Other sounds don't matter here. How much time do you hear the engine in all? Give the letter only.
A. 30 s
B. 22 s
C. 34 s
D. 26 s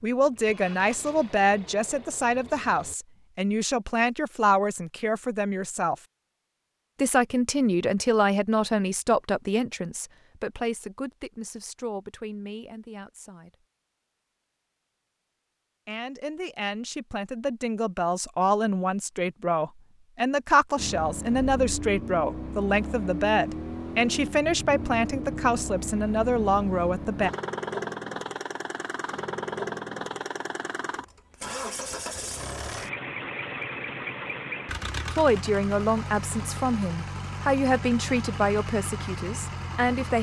B.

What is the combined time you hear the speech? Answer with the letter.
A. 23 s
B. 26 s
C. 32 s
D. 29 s
D.